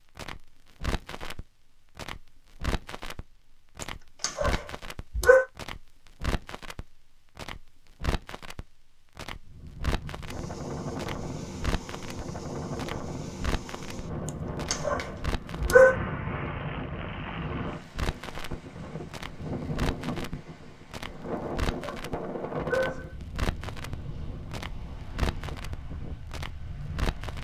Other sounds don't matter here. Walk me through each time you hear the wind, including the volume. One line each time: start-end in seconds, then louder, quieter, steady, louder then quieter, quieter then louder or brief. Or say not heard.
9.4-27.3 quieter.